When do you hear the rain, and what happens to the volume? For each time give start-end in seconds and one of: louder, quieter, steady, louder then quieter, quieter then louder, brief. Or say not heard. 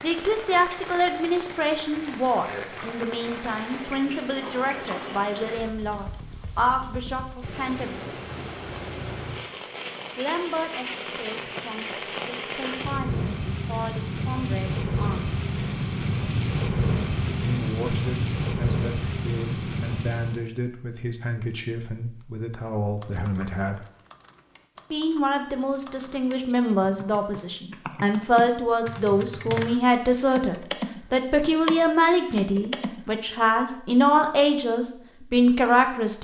0.0-20.5 louder.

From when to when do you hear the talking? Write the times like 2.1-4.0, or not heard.
0.0-8.1, 10.2-15.3, 17.2-23.9, 24.9-36.1.